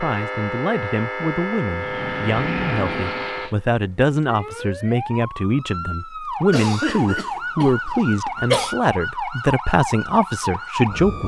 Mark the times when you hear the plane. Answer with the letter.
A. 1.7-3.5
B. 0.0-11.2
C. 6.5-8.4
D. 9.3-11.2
A.